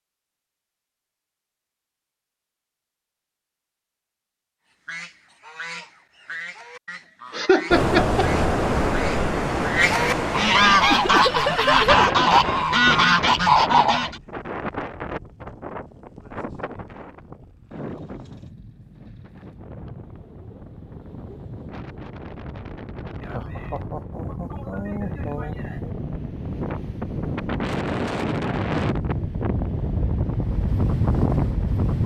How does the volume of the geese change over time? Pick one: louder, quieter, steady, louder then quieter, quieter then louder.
louder.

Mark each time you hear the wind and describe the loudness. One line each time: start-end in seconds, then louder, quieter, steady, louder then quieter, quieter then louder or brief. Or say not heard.
7.7-32.0 quieter then louder.